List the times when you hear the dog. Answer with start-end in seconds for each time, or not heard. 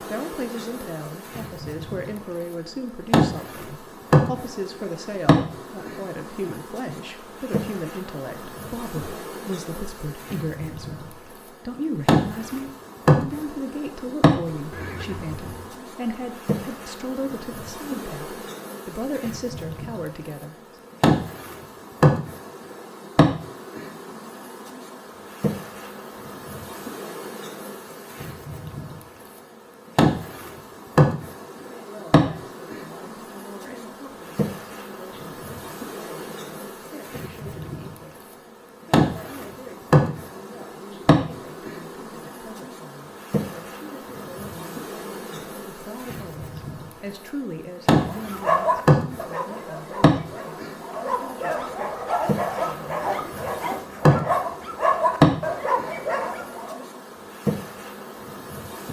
48.0-56.9.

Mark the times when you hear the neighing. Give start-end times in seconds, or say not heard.
14.7-15.8.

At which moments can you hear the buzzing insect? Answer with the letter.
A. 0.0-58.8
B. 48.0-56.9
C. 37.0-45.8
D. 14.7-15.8
A.